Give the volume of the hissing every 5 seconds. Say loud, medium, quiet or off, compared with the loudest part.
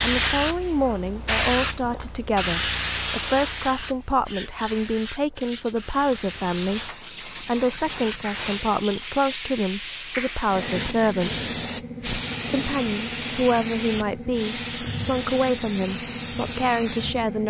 loud, medium, loud, loud.